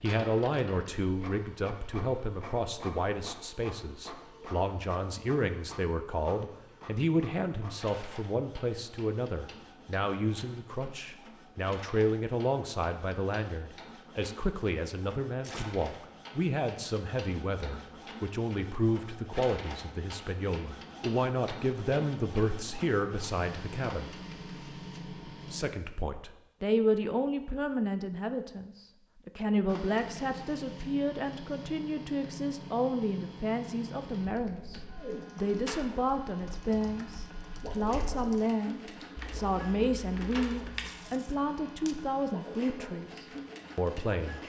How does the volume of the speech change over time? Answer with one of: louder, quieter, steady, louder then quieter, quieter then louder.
steady.